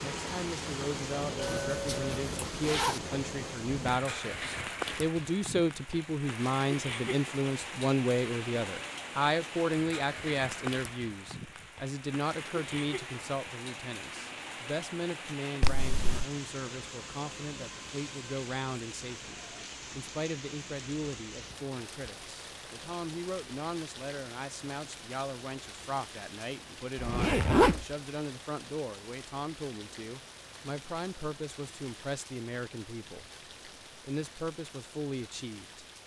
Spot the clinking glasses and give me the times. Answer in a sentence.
You can hear the clinking glasses from 1.4 to 2.2 s.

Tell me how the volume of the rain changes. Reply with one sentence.
The volume of the rain goes down.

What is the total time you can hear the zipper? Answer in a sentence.
You can hear the zipper for 3 seconds altogether.